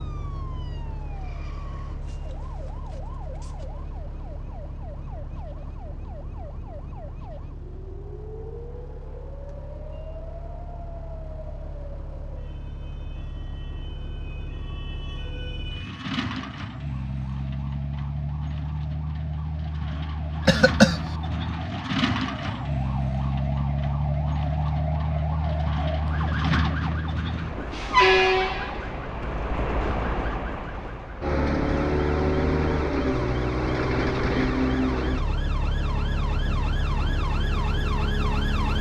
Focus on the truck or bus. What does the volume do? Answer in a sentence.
The loudness of the truck or bus goes up.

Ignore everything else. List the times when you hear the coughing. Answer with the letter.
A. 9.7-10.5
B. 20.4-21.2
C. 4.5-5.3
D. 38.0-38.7
B.